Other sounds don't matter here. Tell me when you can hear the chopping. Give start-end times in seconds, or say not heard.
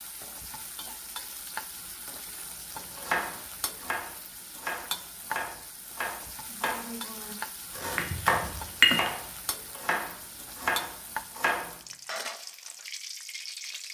3.0-11.7.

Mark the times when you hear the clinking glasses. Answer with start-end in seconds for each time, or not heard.
8.0-9.1.